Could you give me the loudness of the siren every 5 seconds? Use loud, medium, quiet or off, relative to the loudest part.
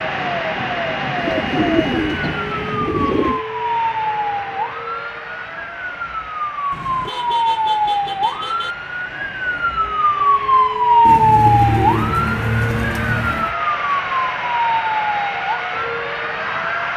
medium, medium, loud, medium.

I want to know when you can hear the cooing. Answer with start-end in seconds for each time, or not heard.
1.1-3.4, 11.1-13.6.